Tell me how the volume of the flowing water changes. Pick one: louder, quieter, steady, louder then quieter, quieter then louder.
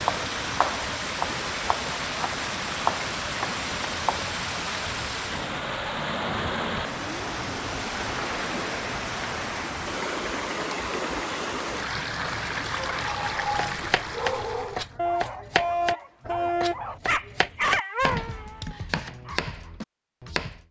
steady.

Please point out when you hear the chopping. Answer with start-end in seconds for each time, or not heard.
0.0-4.3, 13.7-20.6.